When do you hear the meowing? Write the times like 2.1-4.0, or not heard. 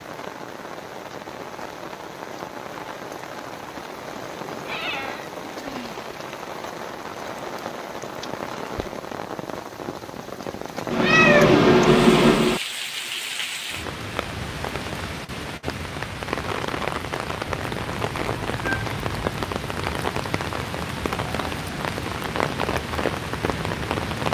4.7-5.3, 10.9-12.6, 17.4-19.4.